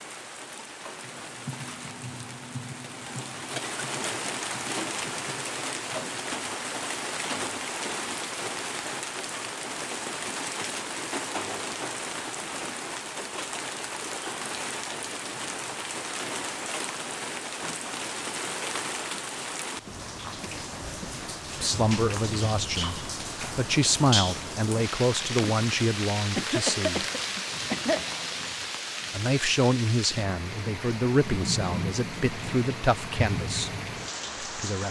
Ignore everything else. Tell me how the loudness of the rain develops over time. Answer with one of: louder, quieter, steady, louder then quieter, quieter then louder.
steady.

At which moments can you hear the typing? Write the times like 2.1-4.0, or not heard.
0.9-6.3.